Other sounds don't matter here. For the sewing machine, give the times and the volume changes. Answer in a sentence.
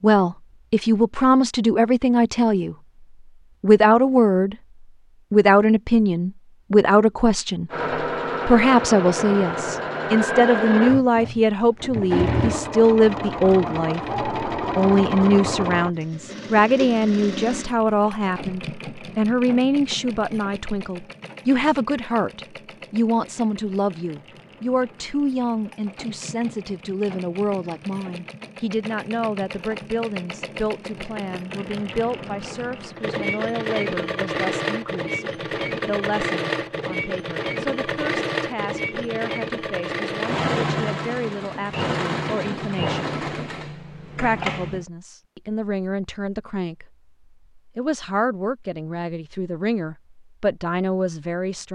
You can hear the sewing machine from 7.7 to 44.9 s, getting quieter then louder.